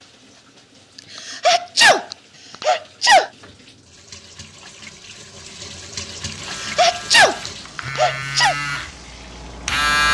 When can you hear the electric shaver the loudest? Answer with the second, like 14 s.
10 s.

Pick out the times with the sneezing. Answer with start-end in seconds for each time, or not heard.
1.1-3.3, 6.5-8.6.